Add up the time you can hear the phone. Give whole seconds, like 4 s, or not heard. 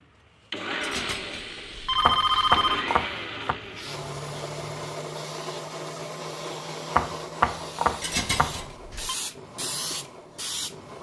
3 s.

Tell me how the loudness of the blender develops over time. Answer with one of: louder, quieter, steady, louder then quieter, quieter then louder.
quieter.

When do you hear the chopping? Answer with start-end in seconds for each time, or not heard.
1.9-3.5, 6.9-8.7.